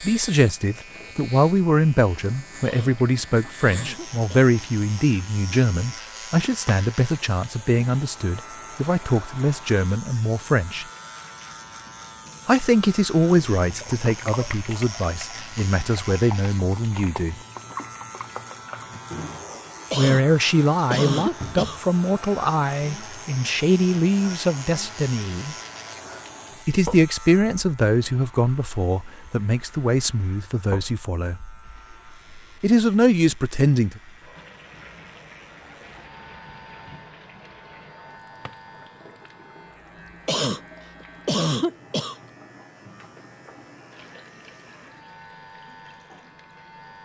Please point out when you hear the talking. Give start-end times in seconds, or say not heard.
0.0-10.8, 12.4-17.4, 19.9-25.6, 26.6-31.4, 32.6-34.0.